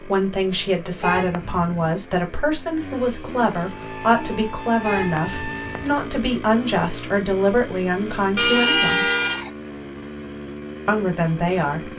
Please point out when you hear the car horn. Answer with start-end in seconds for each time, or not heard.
1.0-1.9, 4.8-6.0, 8.3-9.5.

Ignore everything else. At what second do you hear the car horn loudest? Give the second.
9 s.